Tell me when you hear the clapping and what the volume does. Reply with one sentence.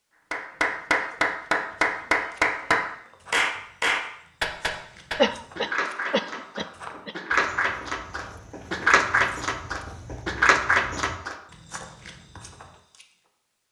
The clapping can be heard from 0.3 to 11.3 s, getting quieter then louder.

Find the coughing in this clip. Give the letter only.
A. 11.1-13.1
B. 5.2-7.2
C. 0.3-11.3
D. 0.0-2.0
B.